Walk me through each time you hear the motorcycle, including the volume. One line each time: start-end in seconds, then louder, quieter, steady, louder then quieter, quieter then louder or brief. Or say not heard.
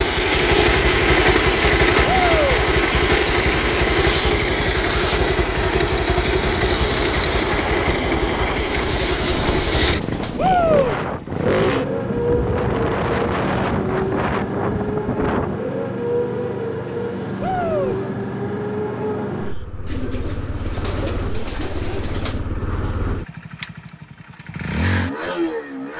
0.0-25.9 quieter.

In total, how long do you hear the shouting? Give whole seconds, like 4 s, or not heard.
2 s.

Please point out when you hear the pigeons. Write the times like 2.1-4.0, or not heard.
8.0-10.8, 19.9-22.5.